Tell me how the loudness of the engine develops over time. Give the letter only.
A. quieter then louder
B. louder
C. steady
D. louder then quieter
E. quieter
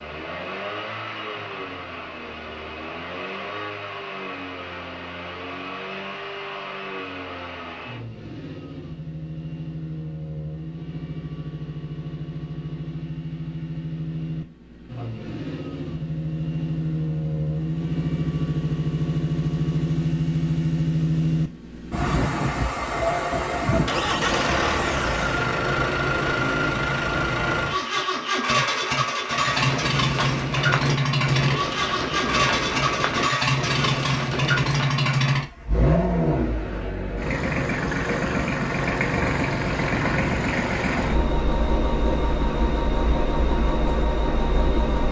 B.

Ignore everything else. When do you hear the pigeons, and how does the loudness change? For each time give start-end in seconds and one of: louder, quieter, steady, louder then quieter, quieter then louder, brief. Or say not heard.
29.3-35.0 steady.